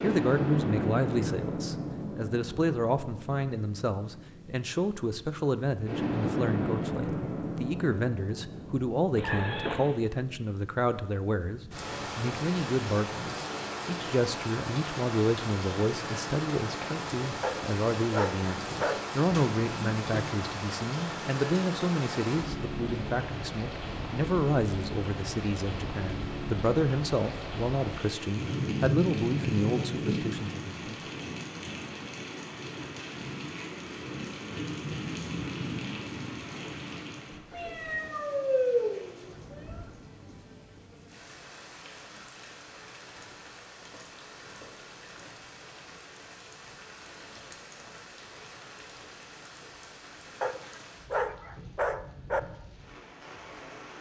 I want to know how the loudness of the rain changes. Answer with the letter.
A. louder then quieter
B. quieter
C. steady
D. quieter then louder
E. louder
B.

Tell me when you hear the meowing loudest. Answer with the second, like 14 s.
39 s.